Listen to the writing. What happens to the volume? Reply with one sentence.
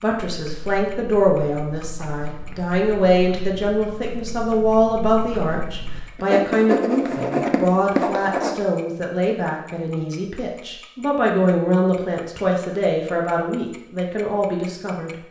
The volume of the writing goes up.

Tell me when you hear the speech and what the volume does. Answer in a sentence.
You can hear the speech from 0.0 to 15.1 s, at a steady volume.